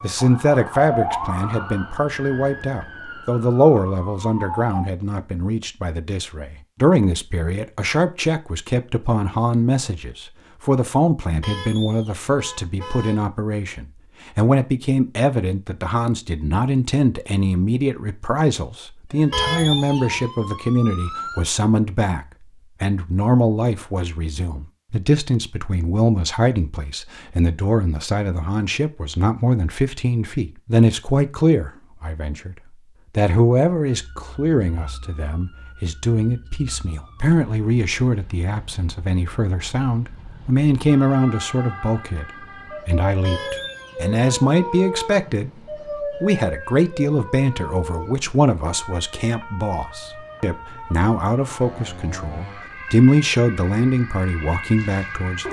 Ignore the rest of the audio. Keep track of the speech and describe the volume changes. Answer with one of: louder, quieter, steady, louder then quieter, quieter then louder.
steady.